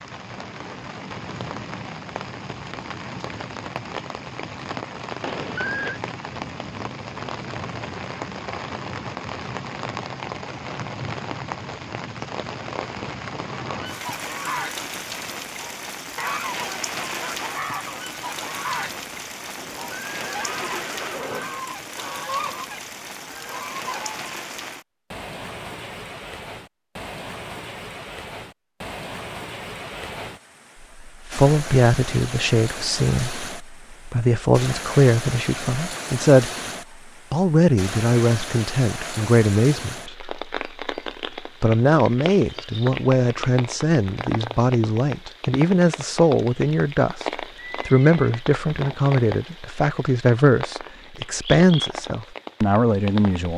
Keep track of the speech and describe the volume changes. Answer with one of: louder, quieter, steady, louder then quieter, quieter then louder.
steady.